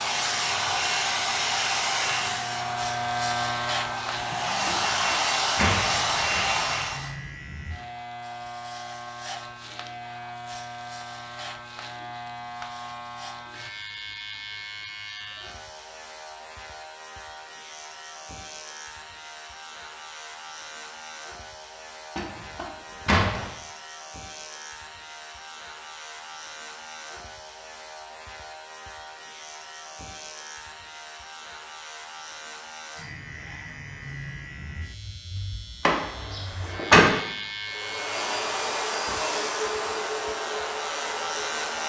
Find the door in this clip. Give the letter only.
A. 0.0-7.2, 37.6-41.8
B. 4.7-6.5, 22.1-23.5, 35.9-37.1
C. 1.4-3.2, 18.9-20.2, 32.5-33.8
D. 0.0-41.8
B.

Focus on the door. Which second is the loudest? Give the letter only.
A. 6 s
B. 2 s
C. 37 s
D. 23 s
C.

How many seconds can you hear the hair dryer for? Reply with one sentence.
You can hear the hair dryer for 11 seconds altogether.